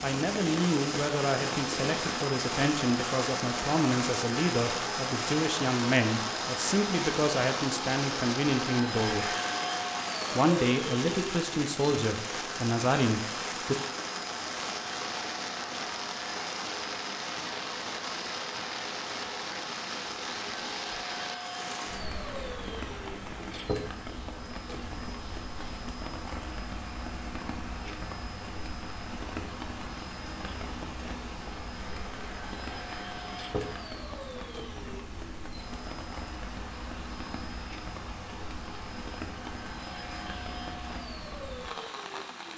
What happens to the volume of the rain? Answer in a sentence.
The loudness of the rain goes down.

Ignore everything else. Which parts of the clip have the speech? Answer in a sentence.
The speech can be heard from 0.0 to 9.3 s and from 10.3 to 13.8 s.